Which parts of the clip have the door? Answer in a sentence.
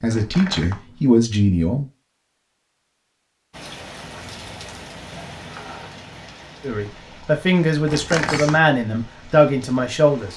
The door can be heard from 0.1 to 1.0 s and from 7.8 to 8.7 s.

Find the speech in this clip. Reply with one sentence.
You can hear the speech from 0.0 to 1.9 s and from 6.6 to 10.3 s.